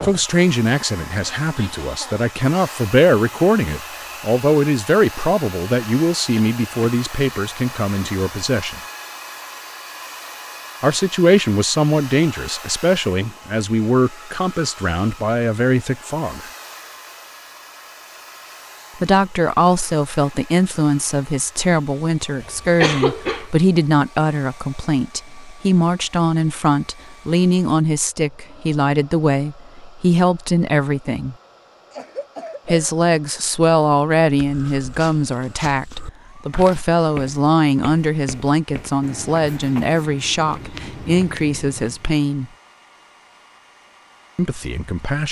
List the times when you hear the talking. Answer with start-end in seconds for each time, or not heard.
0.0-8.8, 10.8-16.4, 18.9-31.4, 32.6-42.5, 44.4-45.2.